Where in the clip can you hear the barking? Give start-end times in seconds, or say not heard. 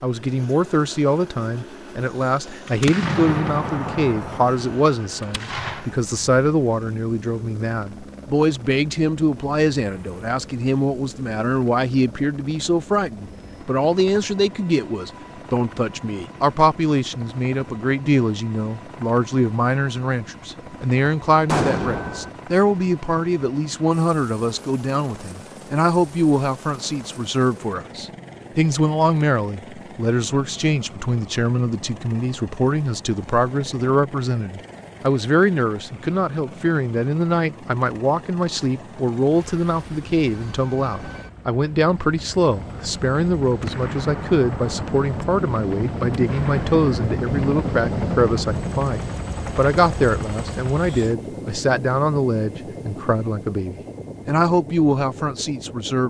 not heard.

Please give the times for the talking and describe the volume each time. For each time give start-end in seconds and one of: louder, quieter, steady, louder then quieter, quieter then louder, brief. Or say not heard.
0.0-56.0 steady.